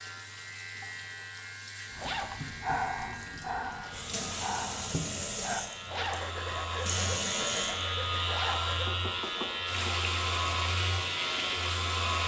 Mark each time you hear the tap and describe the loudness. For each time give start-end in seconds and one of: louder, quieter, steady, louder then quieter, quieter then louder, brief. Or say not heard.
0.0-12.2 louder.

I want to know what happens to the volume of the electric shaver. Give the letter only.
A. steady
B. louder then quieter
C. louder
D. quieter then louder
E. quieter
C.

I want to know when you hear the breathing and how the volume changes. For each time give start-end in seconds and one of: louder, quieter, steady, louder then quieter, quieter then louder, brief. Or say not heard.
1.9-8.9 quieter.